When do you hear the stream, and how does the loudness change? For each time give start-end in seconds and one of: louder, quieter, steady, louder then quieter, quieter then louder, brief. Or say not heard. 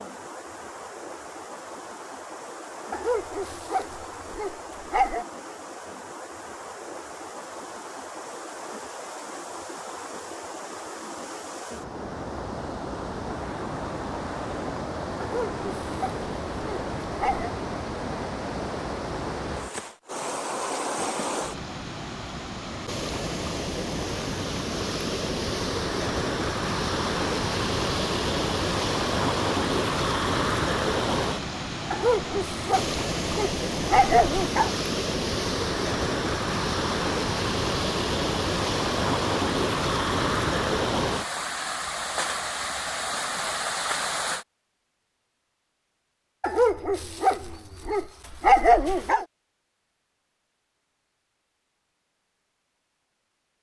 0.0-44.5 louder.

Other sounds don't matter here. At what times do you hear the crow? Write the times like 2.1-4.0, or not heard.
not heard.